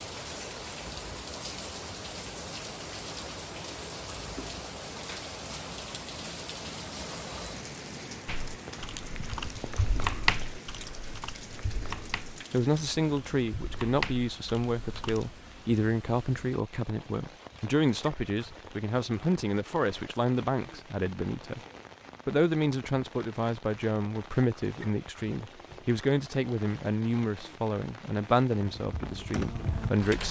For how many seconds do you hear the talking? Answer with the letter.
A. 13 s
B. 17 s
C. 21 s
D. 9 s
B.